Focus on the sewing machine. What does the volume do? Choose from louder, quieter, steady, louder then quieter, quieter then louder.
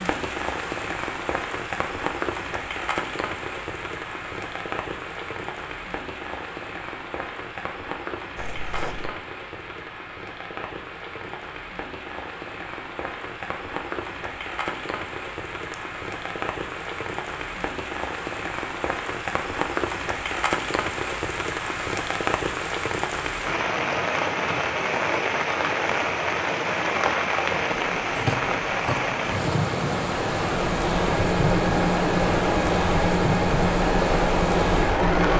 steady.